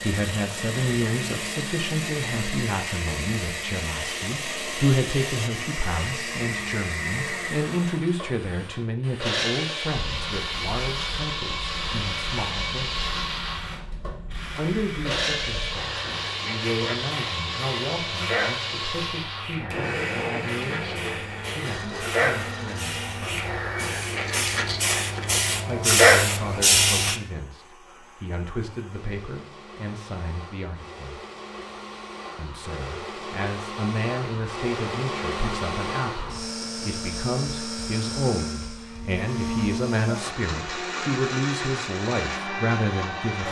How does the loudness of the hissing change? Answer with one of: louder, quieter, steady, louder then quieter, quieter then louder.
louder.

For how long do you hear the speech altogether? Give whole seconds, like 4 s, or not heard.
39 s.